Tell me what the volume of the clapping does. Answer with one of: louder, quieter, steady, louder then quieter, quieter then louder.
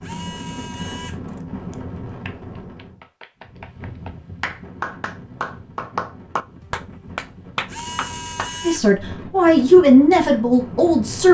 louder.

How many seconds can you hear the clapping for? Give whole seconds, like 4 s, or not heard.
6 s.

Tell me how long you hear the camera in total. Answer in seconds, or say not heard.
3 s.